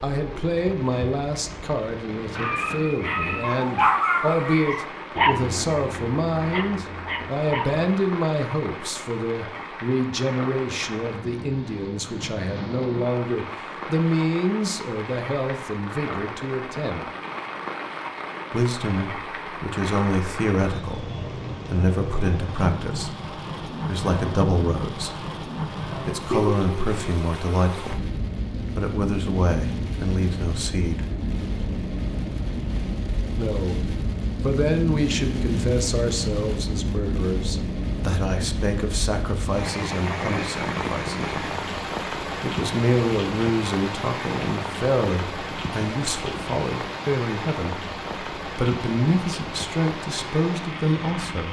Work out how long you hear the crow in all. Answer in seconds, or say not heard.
not heard.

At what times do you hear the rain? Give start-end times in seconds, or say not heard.
0.0-51.4.